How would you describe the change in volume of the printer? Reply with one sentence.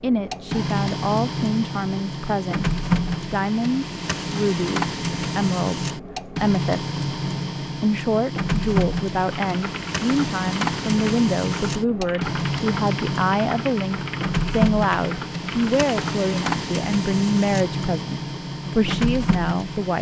The volume of the printer stays about the same.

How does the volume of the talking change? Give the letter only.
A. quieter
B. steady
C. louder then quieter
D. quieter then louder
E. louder
B.